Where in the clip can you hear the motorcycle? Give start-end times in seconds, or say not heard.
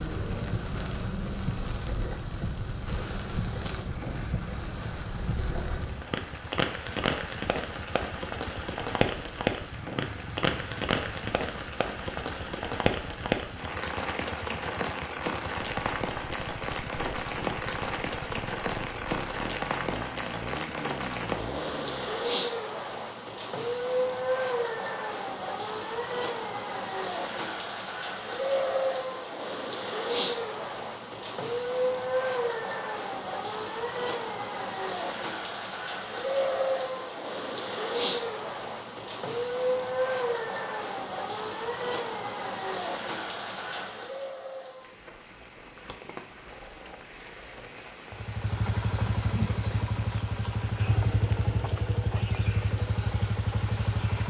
0.2-22.2, 48.1-54.2.